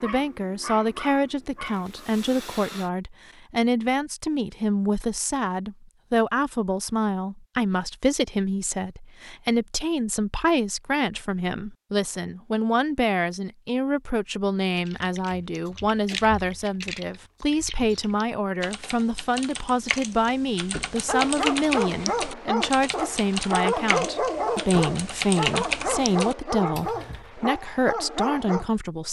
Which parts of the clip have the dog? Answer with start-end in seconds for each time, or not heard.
0.0-2.9, 21.1-28.6.